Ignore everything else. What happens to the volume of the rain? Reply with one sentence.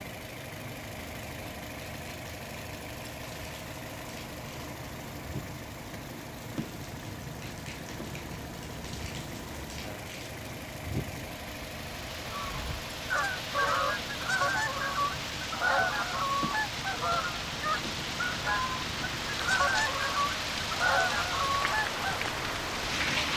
The loudness of the rain goes up.